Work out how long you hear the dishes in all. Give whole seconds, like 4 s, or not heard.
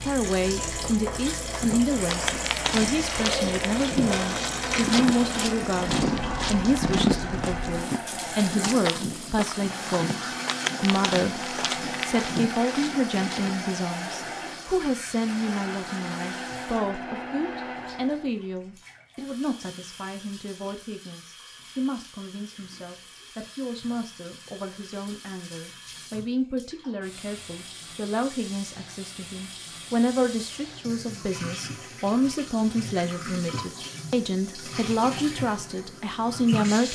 not heard.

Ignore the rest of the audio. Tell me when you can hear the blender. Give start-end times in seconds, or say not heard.
2.0-18.3.